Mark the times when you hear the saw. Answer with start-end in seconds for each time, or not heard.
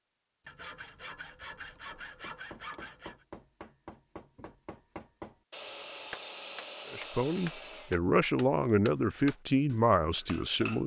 0.5-3.2, 5.5-8.0.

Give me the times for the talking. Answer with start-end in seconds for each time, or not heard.
6.9-10.8.